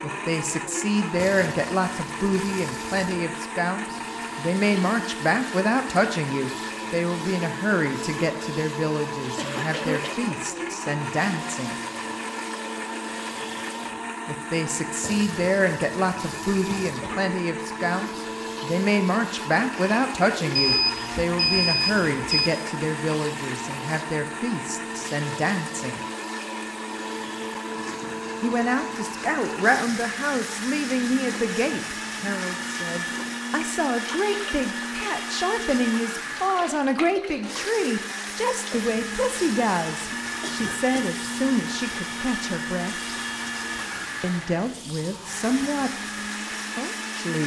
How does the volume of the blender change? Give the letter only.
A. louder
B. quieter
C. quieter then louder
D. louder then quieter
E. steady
E.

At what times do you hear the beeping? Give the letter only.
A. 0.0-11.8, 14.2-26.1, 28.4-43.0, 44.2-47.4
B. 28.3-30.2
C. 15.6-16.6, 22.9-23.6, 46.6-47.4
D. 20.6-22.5
D.